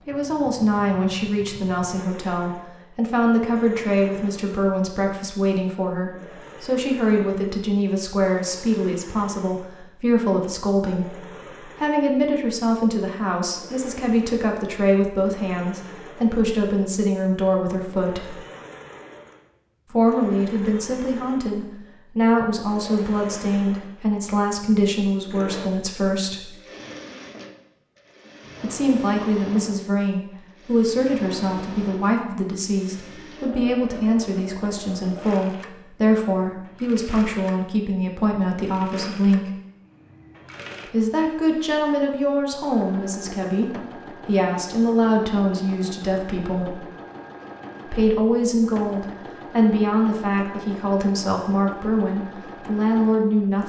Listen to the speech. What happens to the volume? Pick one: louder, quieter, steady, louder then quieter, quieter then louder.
steady.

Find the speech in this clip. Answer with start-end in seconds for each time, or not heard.
0.1-18.4, 19.9-26.4, 28.6-39.5, 40.9-46.8, 47.9-53.6.